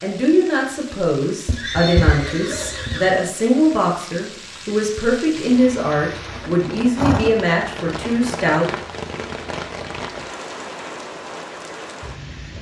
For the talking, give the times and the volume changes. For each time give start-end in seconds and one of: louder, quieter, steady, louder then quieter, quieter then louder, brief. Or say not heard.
0.0-8.8 steady.